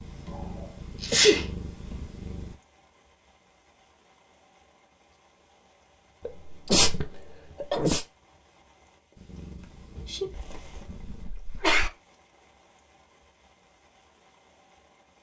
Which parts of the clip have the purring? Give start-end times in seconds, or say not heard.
0.0-2.5, 9.2-11.2.